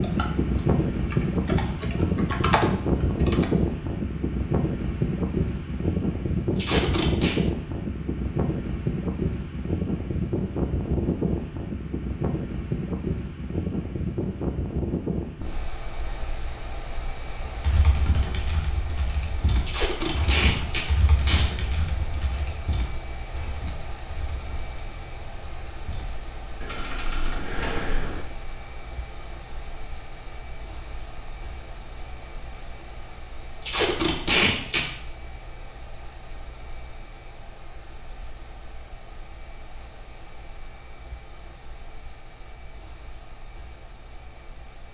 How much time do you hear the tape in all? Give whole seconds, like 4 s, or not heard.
4 s.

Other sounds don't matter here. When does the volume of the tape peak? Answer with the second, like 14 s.
34 s.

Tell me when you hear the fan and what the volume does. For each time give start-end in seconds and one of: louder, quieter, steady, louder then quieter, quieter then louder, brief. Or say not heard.
0.0-44.8 quieter.